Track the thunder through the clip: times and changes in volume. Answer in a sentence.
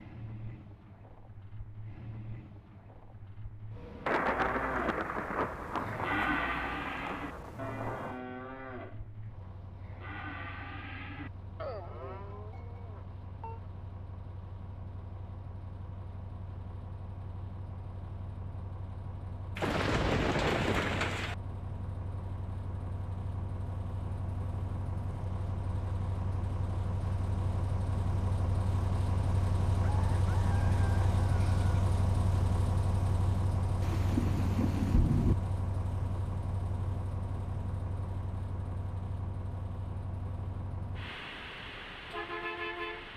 The thunder can be heard from 4.0 to 8.2 s, getting quieter; briefly from 19.6 to 21.4 s; and briefly from 33.8 to 35.4 s.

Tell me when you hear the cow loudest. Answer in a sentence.
The volume of the cow peaks at 6 seconds.